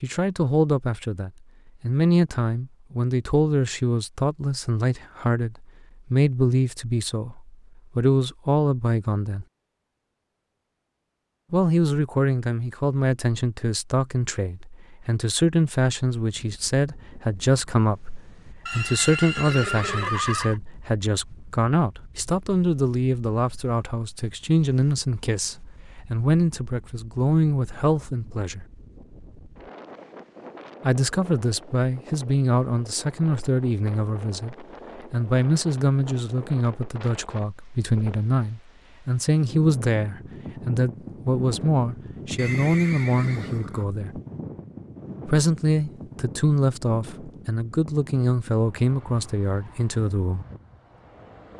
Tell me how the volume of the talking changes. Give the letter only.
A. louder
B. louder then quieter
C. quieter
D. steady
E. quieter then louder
D.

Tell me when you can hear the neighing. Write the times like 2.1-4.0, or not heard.
18.6-20.6, 42.4-43.9.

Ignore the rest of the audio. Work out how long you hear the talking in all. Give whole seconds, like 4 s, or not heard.
45 s.